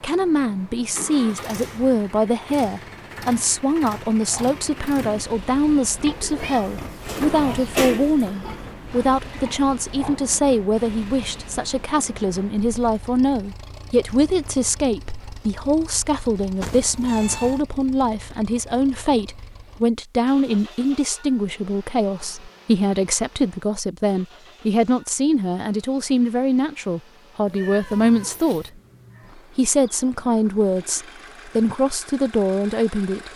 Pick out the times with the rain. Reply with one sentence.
The rain can't be heard in this clip.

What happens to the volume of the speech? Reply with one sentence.
The volume of the speech stays about the same.